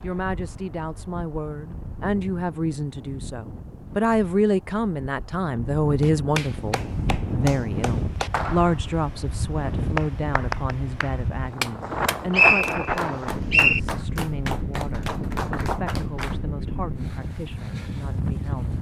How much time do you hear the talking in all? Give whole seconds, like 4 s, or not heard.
19 s.